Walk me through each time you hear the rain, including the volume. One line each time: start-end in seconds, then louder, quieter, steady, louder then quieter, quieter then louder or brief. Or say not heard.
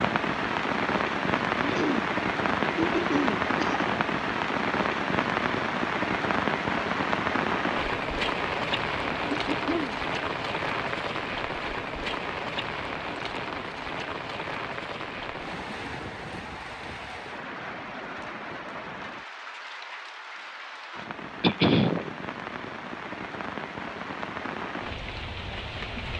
0.0-26.1 quieter.